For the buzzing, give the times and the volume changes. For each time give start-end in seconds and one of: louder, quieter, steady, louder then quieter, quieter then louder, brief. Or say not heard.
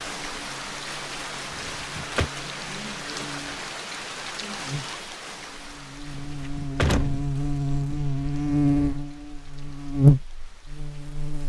0.1-11.4 louder.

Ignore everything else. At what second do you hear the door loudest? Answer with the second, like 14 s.
7 s.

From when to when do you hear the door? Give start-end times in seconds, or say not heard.
1.5-2.3, 6.2-8.0.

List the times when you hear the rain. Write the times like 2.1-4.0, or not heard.
0.0-11.4.